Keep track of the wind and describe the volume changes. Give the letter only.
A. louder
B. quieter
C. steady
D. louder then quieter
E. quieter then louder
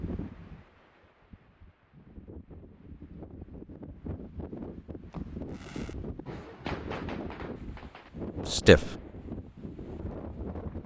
A.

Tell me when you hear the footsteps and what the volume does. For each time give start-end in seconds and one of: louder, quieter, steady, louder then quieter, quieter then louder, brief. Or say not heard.
not heard.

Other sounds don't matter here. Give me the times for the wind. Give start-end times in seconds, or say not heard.
0.0-10.8.